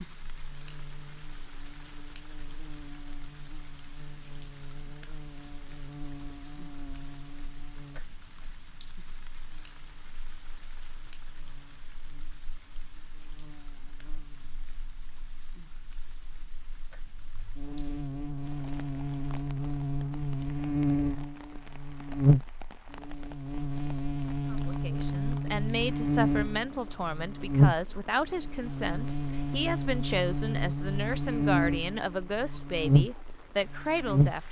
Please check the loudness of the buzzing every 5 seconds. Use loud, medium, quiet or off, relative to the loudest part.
quiet, quiet, quiet, medium, loud, loud, loud.